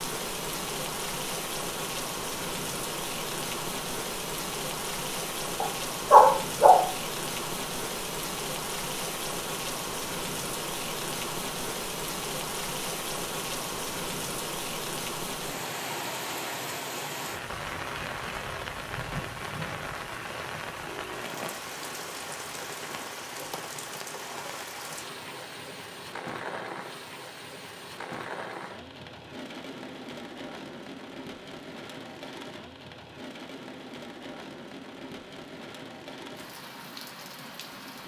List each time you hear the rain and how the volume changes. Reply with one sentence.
The rain can be heard from 0.0 to 38.0 s, getting quieter.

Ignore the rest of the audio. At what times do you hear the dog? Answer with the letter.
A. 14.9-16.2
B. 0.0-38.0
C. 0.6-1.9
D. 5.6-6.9
D.